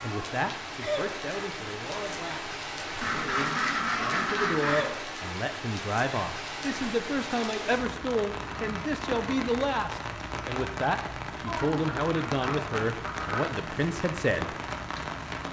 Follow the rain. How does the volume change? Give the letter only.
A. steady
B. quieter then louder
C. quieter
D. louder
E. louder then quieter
A.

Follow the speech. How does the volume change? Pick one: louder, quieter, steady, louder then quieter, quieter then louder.
louder.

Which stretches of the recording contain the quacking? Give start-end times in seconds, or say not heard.
3.0-5.0, 11.4-13.5.